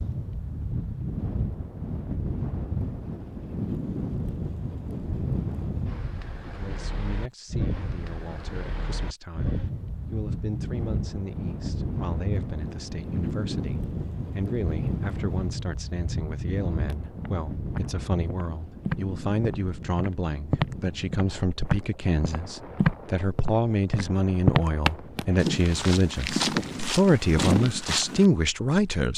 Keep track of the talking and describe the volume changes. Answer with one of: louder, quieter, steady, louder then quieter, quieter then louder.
louder.